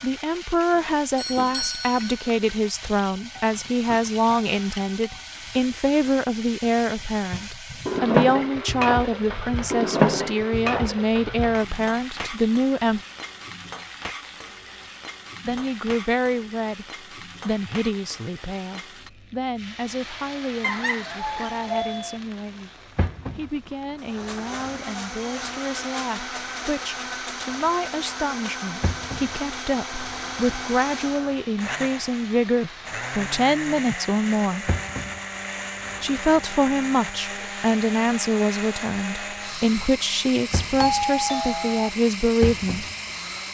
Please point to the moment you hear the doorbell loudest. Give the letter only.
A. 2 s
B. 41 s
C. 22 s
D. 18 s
B.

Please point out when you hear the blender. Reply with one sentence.
You can hear the blender from 23.9 to 43.4 s.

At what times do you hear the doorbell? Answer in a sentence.
You can hear the doorbell from 0.8 to 2.4 s, from 20.6 to 22.2 s and from 40.8 to 41.9 s.